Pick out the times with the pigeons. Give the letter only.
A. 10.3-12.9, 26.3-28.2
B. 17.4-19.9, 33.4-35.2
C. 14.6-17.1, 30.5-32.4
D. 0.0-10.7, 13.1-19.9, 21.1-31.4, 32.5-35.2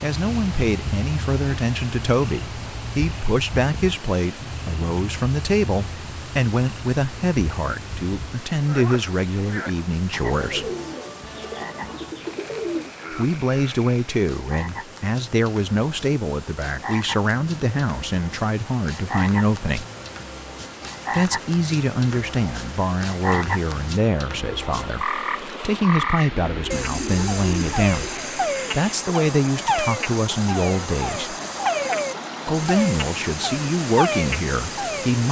A.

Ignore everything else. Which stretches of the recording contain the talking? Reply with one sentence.
You can hear the talking from 0.0 to 10.7 s, from 13.1 to 19.9 s, from 21.1 to 31.4 s and from 32.5 to 35.2 s.